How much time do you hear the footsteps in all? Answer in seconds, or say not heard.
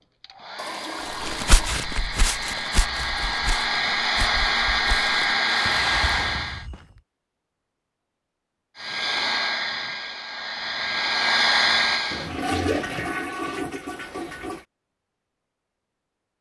6 s.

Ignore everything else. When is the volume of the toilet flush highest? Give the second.
13 s.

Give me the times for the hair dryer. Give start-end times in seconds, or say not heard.
0.0-6.7, 8.8-12.3.